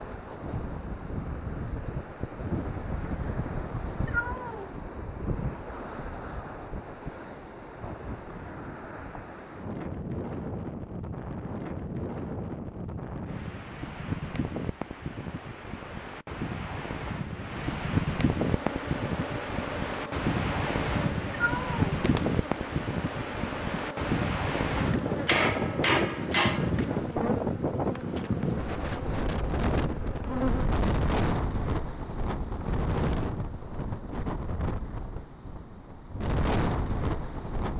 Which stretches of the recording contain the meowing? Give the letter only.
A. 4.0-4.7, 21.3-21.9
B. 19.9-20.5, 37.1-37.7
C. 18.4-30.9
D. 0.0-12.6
A.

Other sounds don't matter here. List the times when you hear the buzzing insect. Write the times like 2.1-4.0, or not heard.
18.4-30.9.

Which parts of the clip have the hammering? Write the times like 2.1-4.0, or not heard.
25.2-26.7.